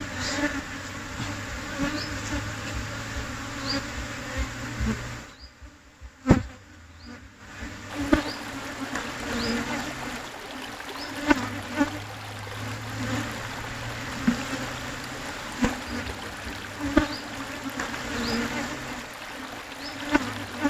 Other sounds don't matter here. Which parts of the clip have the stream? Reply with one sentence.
You can hear the stream from 7.8 to 20.6 s.